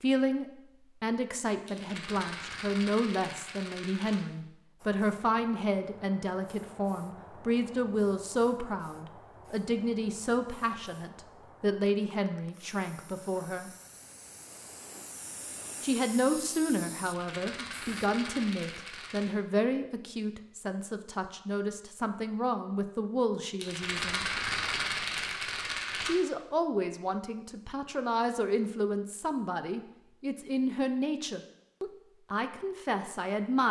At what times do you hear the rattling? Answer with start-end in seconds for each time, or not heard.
1.6-4.2, 17.0-19.4, 23.6-26.1.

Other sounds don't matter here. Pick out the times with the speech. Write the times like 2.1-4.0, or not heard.
0.0-13.7, 15.8-24.2, 26.1-33.6.